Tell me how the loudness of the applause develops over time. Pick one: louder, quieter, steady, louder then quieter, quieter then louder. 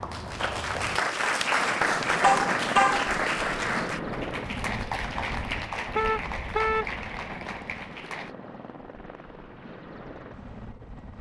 quieter.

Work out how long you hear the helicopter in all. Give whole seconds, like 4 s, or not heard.
11 s.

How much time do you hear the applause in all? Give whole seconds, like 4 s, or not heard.
8 s.